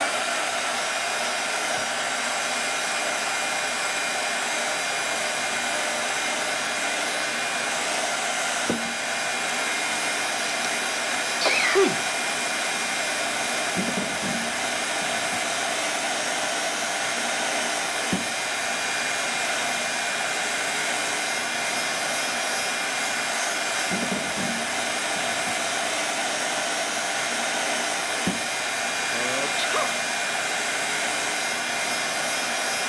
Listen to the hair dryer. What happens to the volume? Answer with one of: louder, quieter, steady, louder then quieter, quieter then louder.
steady.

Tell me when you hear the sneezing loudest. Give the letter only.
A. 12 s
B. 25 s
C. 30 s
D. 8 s
A.